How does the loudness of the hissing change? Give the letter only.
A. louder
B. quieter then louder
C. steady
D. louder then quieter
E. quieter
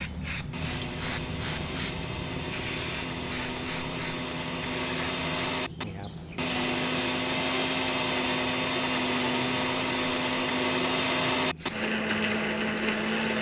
E.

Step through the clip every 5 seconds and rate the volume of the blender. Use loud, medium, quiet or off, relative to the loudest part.
medium, loud, loud.